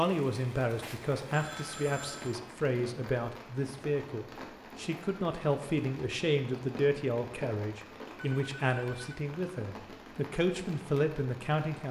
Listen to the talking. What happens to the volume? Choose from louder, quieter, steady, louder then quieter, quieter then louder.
steady.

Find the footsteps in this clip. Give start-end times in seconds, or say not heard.
not heard.